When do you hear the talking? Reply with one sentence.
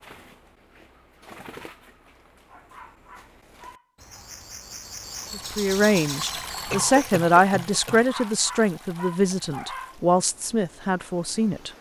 You can hear the talking from 5.3 to 11.7 s.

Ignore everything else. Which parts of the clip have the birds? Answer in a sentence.
The birds can be heard from 0.0 to 7.0 s.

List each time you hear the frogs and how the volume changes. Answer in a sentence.
The frogs can't be heard in this clip.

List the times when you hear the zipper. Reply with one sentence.
The zipper can't be heard in this clip.